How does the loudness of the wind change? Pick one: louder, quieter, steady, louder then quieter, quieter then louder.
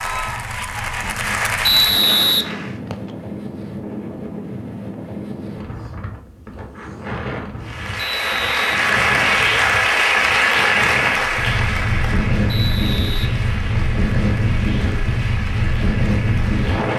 louder.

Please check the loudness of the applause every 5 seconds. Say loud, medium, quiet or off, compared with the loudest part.
medium, loud, loud, quiet.